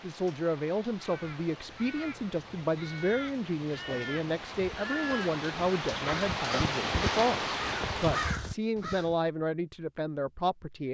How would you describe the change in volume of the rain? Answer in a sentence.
The volume of the rain goes up.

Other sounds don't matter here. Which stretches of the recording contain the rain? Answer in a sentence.
The rain can be heard from 0.0 to 8.3 s.